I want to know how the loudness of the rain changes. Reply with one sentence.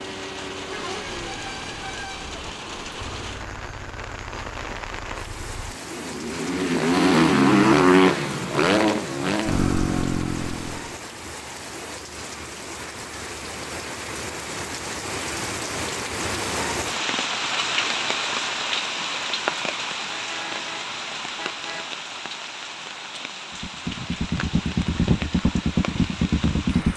The volume of the rain goes up, then down.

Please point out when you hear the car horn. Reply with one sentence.
You can hear the car horn from 0.7 to 2.5 s and from 20.1 to 21.9 s.